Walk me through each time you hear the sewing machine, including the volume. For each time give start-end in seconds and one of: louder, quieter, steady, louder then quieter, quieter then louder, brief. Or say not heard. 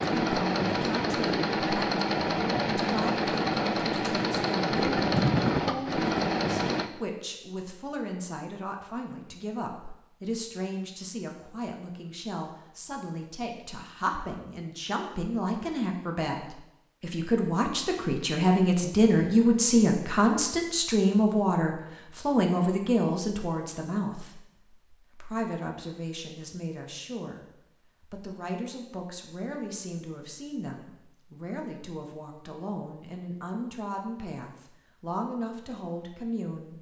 0.0-6.9 steady.